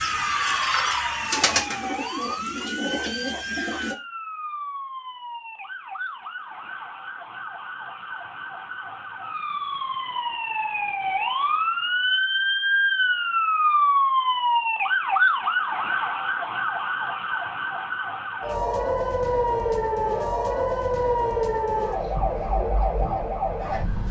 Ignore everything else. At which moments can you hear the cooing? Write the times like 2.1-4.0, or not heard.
0.0-4.0.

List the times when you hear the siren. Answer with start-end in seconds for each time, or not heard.
0.0-24.0.